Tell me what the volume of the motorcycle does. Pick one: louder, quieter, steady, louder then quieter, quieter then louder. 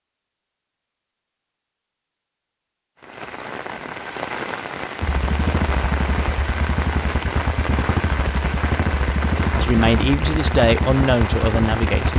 steady.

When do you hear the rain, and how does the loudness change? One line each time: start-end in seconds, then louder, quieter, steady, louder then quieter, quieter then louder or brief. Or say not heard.
3.0-12.1 steady.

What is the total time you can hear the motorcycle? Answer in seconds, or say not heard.
7 s.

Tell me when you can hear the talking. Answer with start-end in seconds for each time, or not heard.
9.6-12.1.